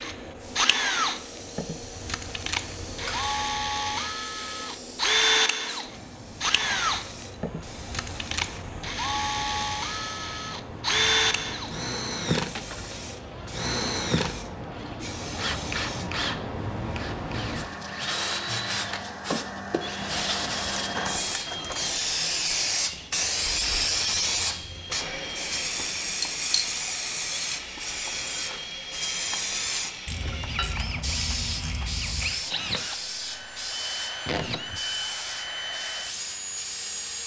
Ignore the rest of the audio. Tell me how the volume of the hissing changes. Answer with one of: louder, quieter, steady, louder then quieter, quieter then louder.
louder then quieter.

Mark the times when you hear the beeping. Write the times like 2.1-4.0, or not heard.
not heard.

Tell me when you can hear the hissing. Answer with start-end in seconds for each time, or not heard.
0.0-37.2.